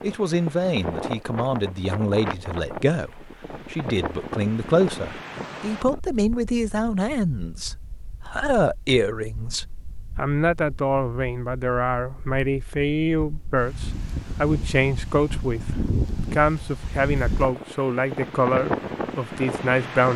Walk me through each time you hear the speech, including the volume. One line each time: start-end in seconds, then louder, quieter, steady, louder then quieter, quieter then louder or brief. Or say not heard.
0.0-20.1 steady.